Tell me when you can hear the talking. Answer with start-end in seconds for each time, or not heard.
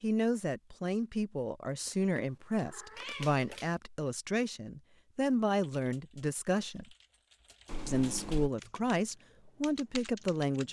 0.0-6.8, 7.8-10.6.